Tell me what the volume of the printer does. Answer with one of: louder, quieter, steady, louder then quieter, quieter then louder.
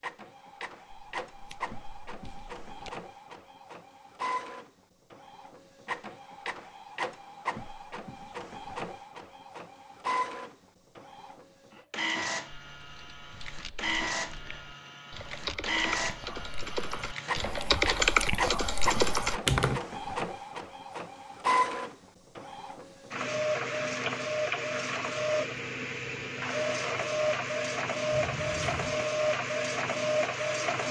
louder.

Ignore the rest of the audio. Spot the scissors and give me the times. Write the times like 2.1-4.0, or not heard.
0.9-2.9, 28.1-29.1.